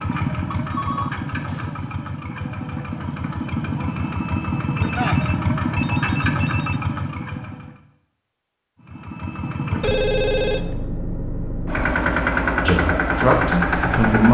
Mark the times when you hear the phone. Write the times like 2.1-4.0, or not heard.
0.5-2.0, 4.8-6.8, 9.8-10.8.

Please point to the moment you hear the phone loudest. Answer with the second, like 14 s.
10 s.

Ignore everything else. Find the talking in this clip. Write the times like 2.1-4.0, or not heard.
12.7-14.2.